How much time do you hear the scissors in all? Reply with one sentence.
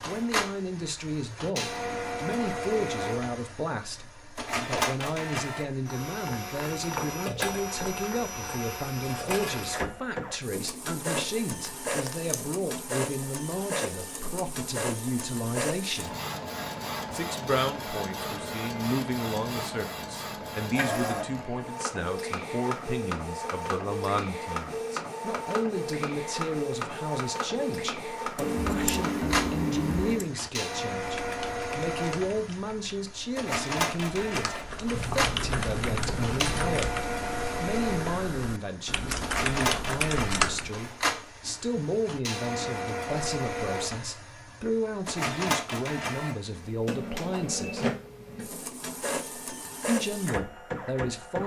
You can hear the scissors for 5 seconds altogether.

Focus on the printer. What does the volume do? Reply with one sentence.
The volume of the printer stays about the same.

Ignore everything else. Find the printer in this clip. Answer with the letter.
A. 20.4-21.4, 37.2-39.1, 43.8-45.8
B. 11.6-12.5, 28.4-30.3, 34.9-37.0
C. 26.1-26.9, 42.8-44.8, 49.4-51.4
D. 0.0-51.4
D.